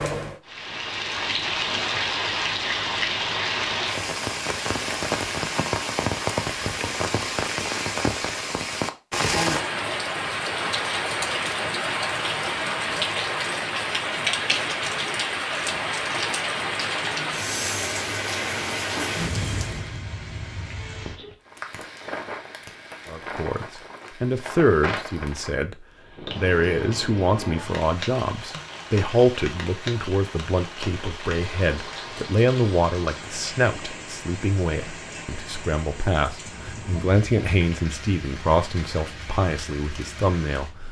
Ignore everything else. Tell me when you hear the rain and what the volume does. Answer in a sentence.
The rain can be heard from 0.0 to 40.8 s, getting quieter.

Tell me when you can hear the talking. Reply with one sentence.
You can hear the talking from 23.1 to 40.7 s.